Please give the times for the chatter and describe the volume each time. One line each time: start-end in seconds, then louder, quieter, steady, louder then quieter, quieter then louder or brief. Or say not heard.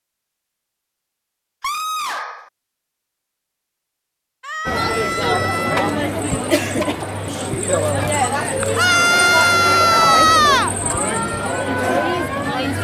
4.7-12.7 steady.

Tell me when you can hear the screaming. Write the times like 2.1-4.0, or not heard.
1.6-2.5, 4.4-6.0, 8.8-10.7.